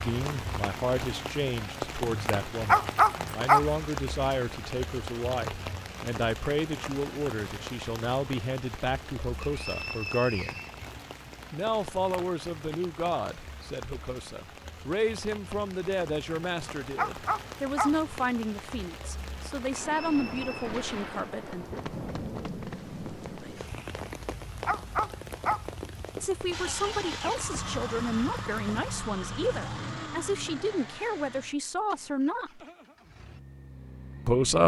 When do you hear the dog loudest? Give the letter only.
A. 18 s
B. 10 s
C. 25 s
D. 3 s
D.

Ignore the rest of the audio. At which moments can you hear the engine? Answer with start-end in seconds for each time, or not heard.
26.5-34.6.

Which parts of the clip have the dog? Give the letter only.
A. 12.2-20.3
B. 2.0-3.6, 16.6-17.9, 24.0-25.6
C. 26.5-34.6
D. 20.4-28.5
B.